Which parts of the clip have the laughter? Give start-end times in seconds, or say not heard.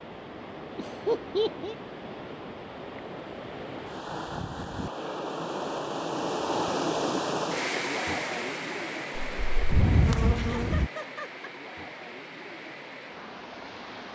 0.8-1.8, 10.3-11.4.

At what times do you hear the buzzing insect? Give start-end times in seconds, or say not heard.
9.2-10.9.